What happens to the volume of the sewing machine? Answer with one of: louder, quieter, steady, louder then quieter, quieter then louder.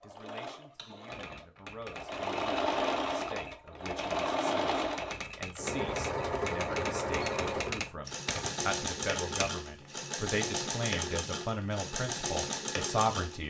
steady.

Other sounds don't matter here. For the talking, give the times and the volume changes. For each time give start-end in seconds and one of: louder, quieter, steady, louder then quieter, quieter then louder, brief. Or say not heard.
0.0-13.4 louder.